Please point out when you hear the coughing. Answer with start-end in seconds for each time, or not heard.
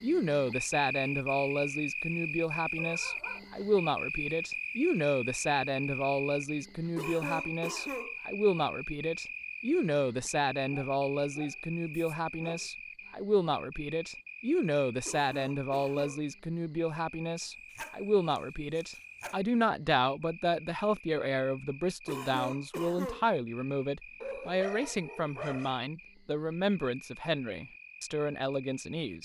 7.0-8.2, 15.1-16.2, 22.1-23.2.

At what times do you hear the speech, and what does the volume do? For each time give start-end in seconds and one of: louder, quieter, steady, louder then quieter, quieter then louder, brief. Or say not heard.
0.0-29.2 steady.